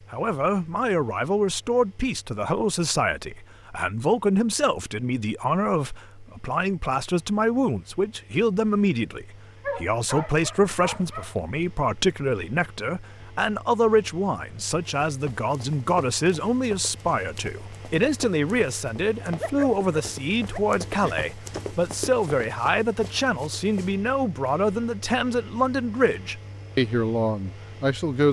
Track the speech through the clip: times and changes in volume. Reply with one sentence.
The speech can be heard from 0.1 to 28.2 s, at a steady volume.